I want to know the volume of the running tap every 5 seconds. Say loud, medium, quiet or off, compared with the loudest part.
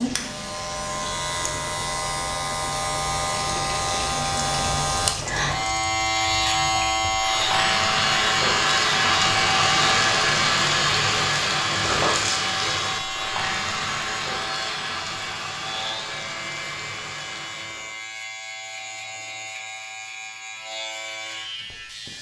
medium, loud, loud, medium, off.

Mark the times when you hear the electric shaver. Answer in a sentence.
The electric shaver can be heard from 0.0 to 22.1 s.